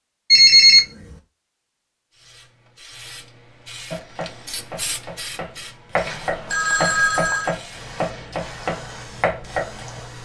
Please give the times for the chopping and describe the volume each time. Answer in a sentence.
The chopping can be heard from 3.9 to 9.8 s, getting louder.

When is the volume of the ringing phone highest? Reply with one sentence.
The volume of the ringing phone peaks at 1 second.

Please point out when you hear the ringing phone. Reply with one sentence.
You can hear the ringing phone from 0.3 to 1.1 s and from 6.0 to 7.5 s.